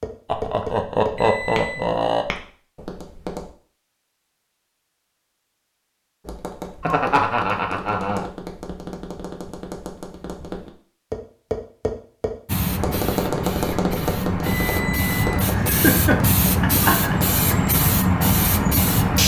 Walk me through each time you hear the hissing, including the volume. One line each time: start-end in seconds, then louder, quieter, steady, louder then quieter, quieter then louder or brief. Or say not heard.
12.4-19.2 louder.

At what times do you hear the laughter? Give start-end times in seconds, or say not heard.
0.3-2.2, 6.8-8.3, 15.5-17.2.